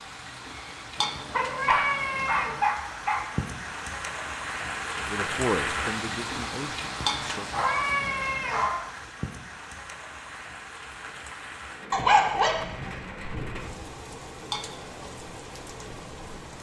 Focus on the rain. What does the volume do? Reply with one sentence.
The loudness of the rain goes up, then down.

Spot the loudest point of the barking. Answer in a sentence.
The loudest moment of the barking is at 12 seconds.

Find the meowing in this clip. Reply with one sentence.
The meowing can be heard from 0.9 to 2.6 s, from 7.0 to 8.7 s and from 14.4 to 15.1 s.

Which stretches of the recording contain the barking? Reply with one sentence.
The barking can be heard from 0.5 to 3.2 s, from 7.5 to 8.8 s and from 11.9 to 13.8 s.